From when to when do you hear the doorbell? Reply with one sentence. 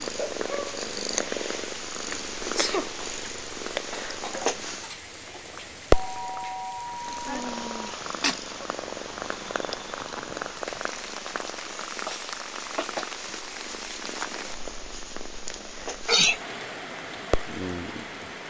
You can hear the doorbell from 5.9 to 8.0 s.